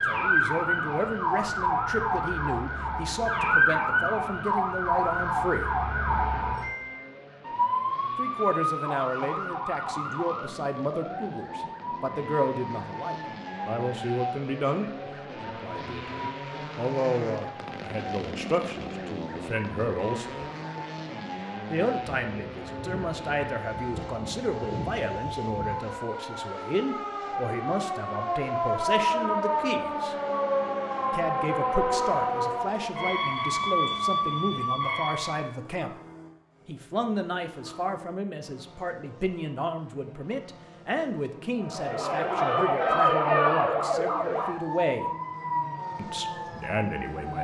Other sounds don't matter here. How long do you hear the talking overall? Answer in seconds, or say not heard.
41 s.